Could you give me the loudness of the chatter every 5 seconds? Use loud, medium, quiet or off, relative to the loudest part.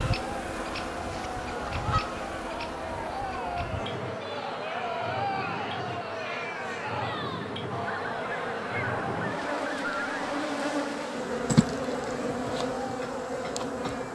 loud, loud, medium.